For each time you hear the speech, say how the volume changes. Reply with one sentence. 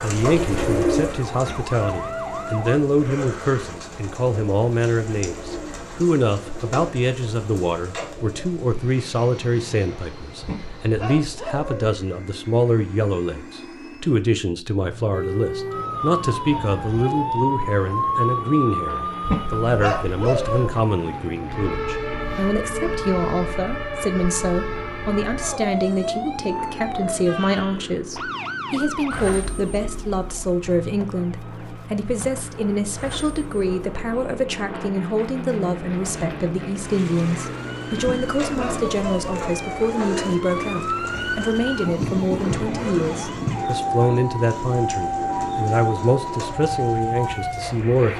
You can hear the speech from 0.0 to 48.1 s, at a steady volume.